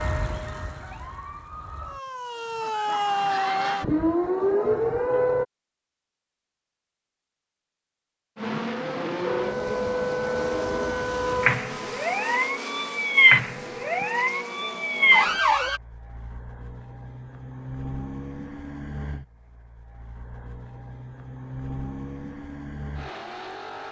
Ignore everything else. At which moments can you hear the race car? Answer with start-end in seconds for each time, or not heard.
8.3-23.8.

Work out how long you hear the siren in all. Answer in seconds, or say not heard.
12 s.